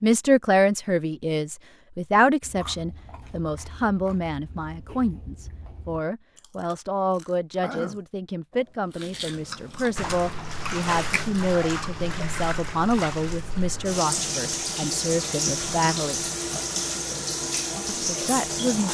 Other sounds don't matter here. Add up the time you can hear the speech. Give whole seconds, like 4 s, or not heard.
17 s.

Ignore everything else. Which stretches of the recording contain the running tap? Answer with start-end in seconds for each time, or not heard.
9.9-18.8.